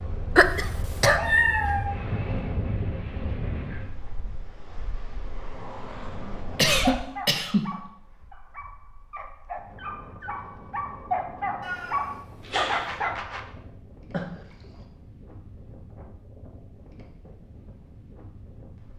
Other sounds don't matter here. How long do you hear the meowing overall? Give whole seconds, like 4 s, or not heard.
2 s.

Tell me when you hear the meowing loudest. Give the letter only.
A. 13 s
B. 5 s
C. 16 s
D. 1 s
D.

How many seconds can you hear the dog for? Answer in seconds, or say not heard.
7 s.